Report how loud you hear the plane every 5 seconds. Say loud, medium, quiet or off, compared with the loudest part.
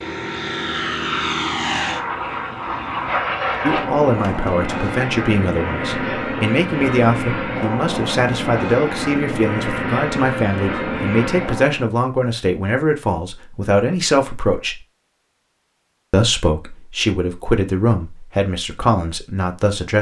loud, loud, loud, off.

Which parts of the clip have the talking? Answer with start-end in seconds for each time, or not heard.
3.6-14.8, 16.1-19.9.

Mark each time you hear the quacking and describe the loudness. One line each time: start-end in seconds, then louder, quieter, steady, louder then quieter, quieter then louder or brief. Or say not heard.
not heard.